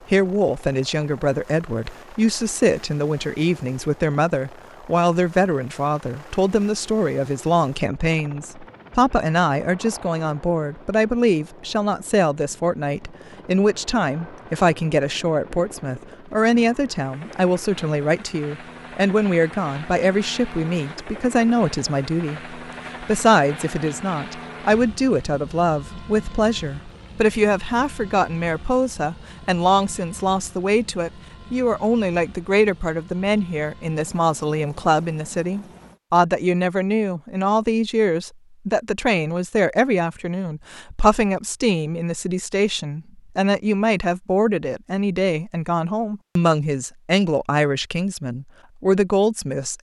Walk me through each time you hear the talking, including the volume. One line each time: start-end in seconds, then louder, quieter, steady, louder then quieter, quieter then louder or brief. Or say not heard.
0.1-49.7 steady.